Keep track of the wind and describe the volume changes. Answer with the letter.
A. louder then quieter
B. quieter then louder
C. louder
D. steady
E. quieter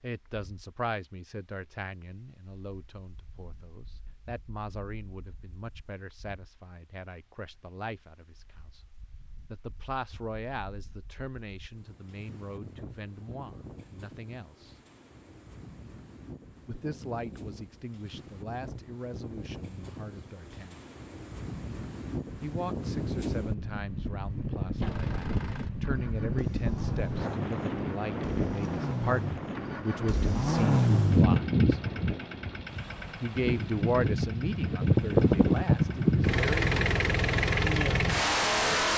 A.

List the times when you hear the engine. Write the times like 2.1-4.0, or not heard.
24.8-38.9.